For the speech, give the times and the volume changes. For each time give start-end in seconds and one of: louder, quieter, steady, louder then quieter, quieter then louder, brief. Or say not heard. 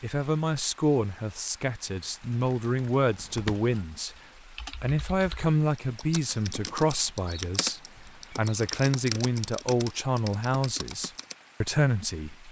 0.0-12.4 steady.